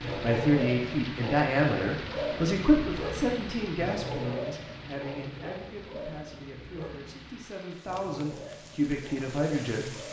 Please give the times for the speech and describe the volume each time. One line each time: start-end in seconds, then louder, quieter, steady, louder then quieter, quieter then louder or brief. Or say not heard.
0.1-10.0 quieter then louder.